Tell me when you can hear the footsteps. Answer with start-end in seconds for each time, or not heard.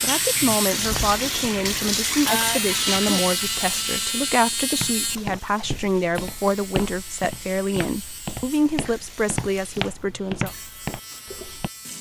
4.8-11.7.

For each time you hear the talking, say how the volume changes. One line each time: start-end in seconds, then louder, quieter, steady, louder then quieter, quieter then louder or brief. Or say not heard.
0.0-10.5 steady.